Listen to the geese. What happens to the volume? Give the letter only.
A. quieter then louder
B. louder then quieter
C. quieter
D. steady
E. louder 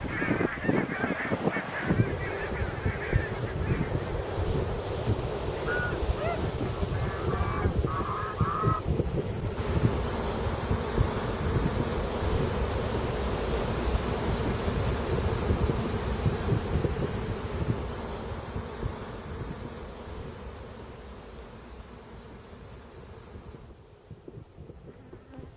A.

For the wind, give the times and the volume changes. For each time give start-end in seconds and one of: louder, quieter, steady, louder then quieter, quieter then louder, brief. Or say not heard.
0.0-25.5 quieter.